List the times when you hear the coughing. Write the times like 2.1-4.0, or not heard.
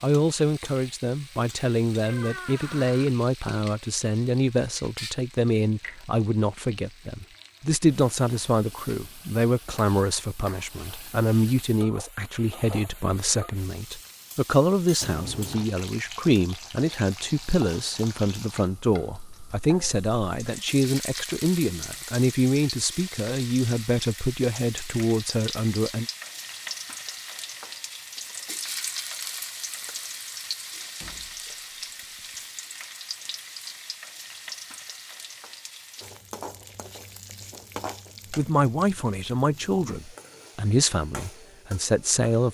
not heard.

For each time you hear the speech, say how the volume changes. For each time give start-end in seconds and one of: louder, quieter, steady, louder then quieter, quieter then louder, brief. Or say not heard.
0.0-26.1 steady
38.3-42.4 quieter then louder.